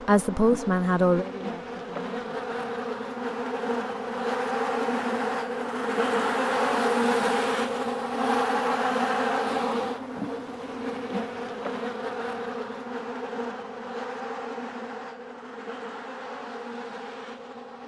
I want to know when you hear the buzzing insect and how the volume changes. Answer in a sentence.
The buzzing insect can be heard from 0.0 to 17.8 s, getting louder then quieter.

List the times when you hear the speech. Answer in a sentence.
You can hear the speech from 0.1 to 2.5 s.